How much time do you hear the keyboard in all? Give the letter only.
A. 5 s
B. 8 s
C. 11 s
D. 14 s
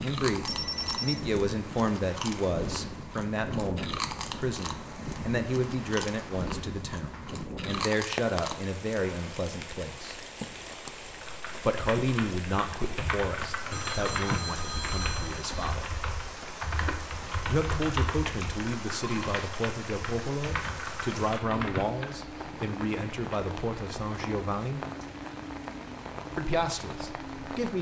C.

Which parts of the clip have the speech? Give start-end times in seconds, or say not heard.
0.0-10.2, 11.6-15.9, 17.4-24.9, 26.4-27.7.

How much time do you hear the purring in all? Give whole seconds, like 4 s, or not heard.
not heard.